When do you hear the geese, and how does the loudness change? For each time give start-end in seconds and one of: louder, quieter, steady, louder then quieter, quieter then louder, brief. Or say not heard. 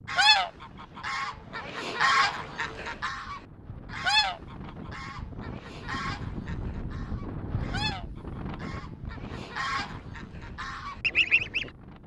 0.1-11.7 quieter then louder.